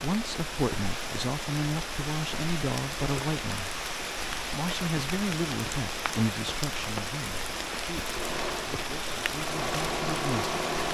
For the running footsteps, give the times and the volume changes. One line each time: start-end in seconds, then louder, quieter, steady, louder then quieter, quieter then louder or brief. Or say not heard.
not heard.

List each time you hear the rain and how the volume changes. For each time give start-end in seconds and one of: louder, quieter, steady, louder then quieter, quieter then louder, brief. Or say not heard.
0.0-10.8 steady.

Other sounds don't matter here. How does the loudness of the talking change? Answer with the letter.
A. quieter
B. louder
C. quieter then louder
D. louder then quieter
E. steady
A.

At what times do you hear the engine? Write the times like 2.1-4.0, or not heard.
8.0-10.8.